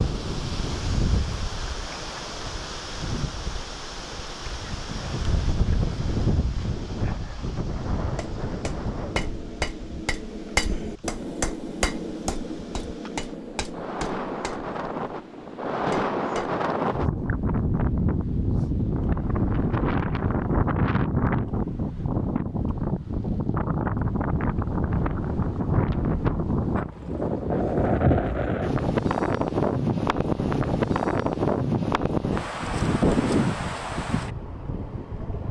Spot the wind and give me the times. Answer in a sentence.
The wind can be heard from 0.0 to 35.4 s.